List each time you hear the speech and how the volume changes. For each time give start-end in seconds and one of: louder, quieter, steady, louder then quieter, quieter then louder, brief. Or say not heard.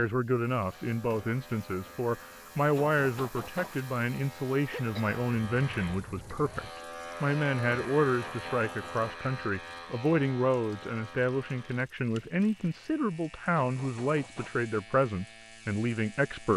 0.0-16.5 steady.